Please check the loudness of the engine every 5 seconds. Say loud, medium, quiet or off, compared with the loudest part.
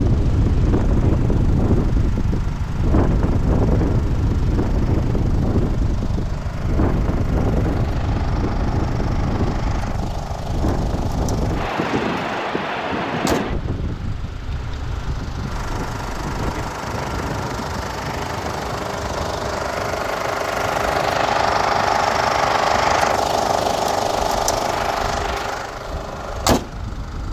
quiet, quiet, quiet, medium, loud, medium.